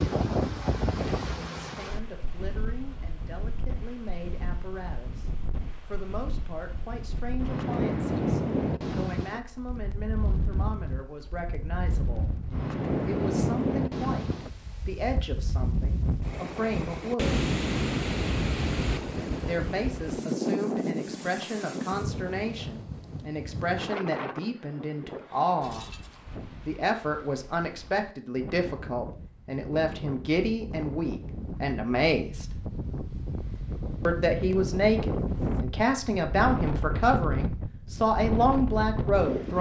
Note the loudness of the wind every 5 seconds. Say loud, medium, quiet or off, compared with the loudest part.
loud, loud, loud, loud, loud, quiet, medium, loud.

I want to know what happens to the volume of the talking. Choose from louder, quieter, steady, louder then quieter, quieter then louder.
louder.